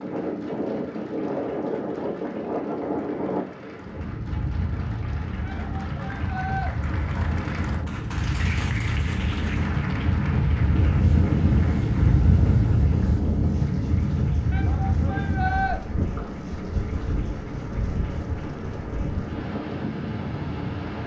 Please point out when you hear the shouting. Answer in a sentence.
The shouting can be heard from 5.5 to 6.7 s and from 14.5 to 15.8 s.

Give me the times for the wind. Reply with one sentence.
You can hear the wind from 0.0 to 21.0 s.